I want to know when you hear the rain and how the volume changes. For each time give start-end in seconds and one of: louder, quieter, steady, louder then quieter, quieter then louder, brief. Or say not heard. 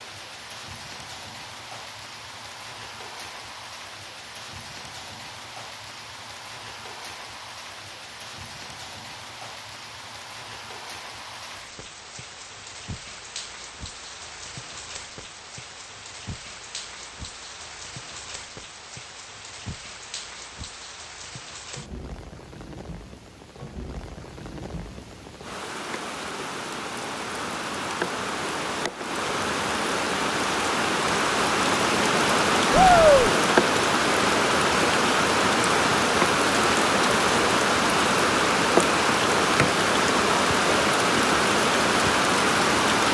0.0-43.0 louder.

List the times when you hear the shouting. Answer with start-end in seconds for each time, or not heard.
32.7-33.3.